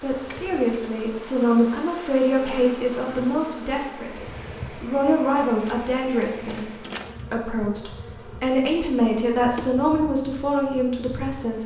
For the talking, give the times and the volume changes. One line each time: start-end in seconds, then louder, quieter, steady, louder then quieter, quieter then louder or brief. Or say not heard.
0.0-11.6 steady.